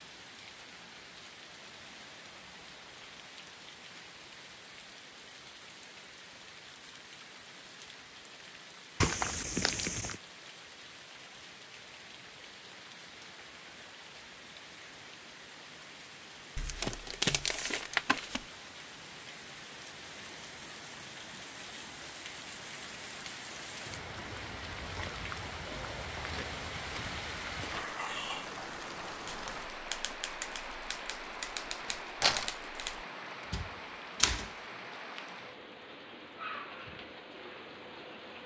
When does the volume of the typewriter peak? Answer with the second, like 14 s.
34 s.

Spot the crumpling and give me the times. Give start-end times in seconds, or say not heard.
9.0-10.2, 16.6-18.4, 31.8-32.5.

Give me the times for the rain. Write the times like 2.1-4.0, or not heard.
0.0-38.4.